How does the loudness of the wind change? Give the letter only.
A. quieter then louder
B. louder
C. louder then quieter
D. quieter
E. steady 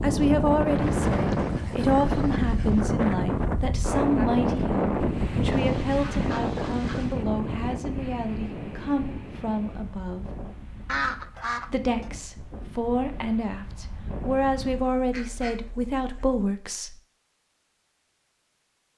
D.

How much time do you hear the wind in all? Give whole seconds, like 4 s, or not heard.
15 s.